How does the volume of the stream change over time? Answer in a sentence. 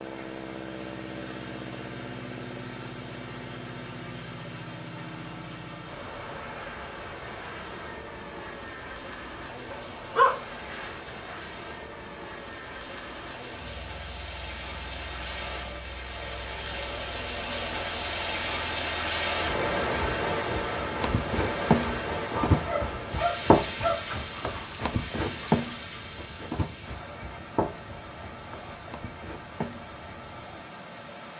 The volume of the stream goes up, then down.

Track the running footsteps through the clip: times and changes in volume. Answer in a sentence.
The running footsteps can be heard from 21.0 to 29.9 s, getting quieter.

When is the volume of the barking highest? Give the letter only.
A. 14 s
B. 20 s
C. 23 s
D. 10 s
D.